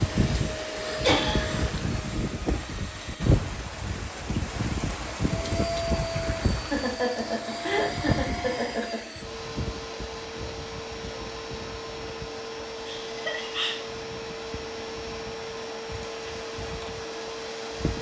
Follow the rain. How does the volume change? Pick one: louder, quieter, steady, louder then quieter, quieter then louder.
quieter.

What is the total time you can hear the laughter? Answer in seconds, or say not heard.
4 s.